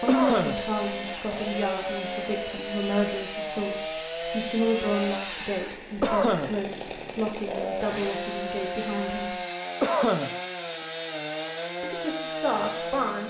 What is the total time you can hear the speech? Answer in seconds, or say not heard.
11 s.